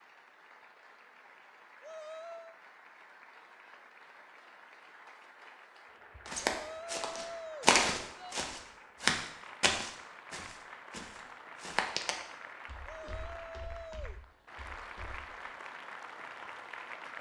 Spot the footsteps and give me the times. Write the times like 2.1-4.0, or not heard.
6.2-15.3.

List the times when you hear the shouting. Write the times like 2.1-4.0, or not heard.
1.8-2.6, 6.5-8.4, 12.8-14.2.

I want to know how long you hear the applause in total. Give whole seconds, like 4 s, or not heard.
17 s.